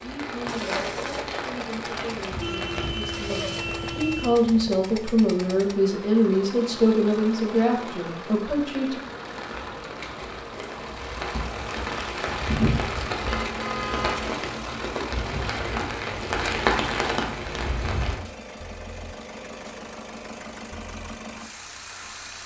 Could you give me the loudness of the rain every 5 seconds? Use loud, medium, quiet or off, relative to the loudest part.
medium, quiet, loud, loud, off.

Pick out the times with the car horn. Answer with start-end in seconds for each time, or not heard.
2.3-4.3, 13.4-14.2.